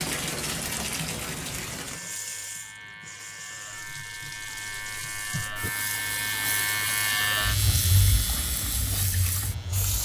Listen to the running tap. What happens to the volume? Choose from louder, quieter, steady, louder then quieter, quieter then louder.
quieter then louder.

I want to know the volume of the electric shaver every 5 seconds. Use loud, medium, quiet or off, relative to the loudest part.
medium, loud.